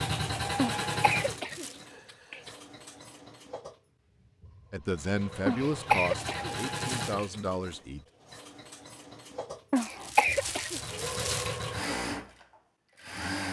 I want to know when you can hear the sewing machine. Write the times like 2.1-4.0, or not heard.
0.0-13.4.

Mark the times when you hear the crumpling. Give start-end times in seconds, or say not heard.
1.4-1.9, 6.4-7.2, 9.8-11.7.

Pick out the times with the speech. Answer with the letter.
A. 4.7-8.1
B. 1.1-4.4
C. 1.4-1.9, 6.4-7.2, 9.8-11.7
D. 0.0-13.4
A.